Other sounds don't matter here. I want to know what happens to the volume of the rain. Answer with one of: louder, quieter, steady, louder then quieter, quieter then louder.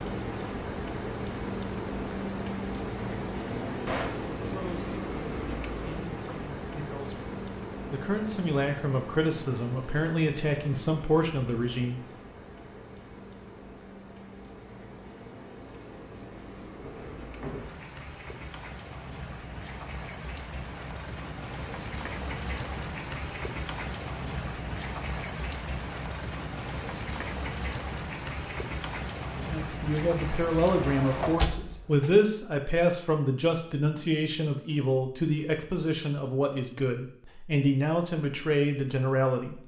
quieter then louder.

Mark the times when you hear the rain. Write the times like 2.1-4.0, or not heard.
0.0-31.6.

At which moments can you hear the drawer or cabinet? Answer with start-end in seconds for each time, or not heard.
3.6-4.2, 16.8-17.9, 30.6-32.1.